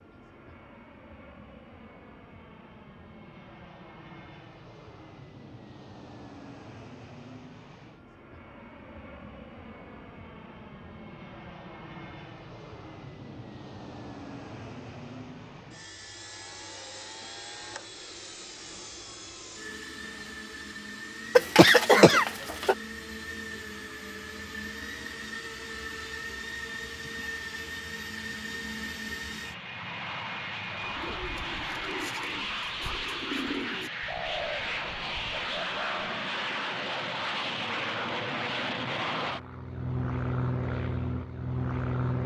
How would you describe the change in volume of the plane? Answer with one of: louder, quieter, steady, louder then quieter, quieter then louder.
louder.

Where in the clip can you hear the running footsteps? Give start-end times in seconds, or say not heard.
not heard.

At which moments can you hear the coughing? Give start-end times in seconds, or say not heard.
21.4-22.8.